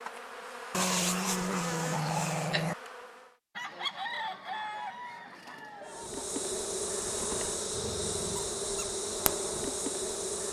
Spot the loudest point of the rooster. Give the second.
4 s.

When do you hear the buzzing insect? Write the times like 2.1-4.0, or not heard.
0.0-3.4, 5.8-10.4.